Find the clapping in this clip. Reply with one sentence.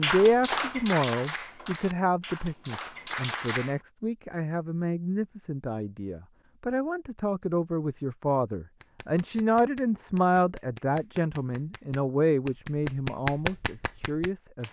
The clapping can be heard from 0.0 to 3.8 s and from 8.8 to 14.6 s.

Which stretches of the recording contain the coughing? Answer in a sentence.
The coughing can't be heard in this clip.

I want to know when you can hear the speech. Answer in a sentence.
The speech can be heard from 0.0 to 14.6 s.